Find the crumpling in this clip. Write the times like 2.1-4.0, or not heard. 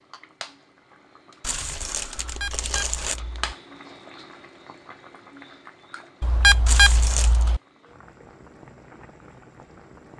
1.4-3.2, 6.7-7.5.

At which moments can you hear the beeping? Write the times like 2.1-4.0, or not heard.
2.2-3.5, 6.2-7.6.